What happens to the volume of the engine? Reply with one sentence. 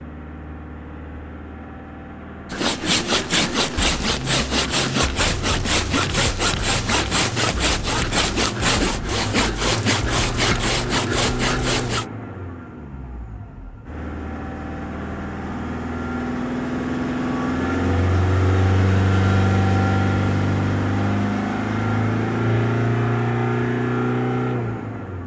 The volume of the engine goes up.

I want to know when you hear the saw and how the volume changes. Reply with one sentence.
The saw can be heard from 2.5 to 12.1 s, at a steady volume.